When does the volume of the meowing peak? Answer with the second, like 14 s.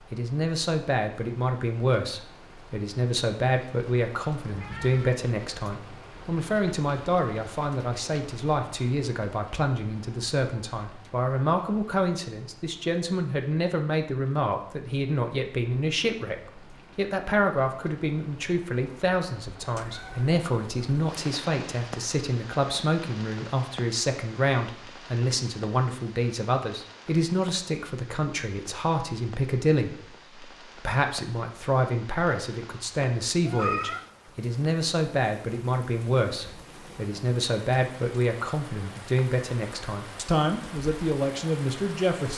34 s.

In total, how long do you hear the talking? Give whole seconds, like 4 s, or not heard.
42 s.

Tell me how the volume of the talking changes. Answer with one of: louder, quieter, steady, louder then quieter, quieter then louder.
steady.